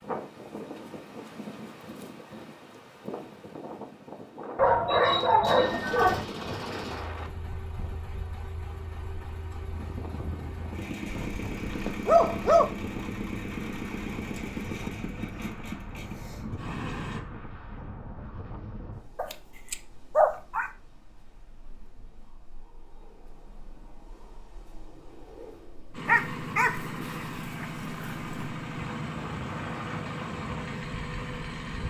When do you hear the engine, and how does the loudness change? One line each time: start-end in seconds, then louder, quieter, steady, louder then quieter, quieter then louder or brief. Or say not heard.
5.0-17.2 quieter then louder
25.9-31.8 steady.